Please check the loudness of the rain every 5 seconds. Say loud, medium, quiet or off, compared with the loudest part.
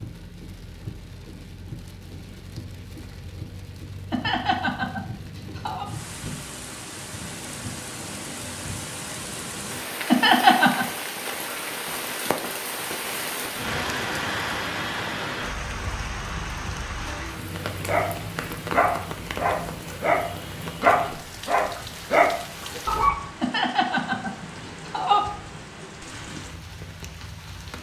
medium, medium, loud, loud, medium, medium.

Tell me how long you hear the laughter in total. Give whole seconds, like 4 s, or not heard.
4 s.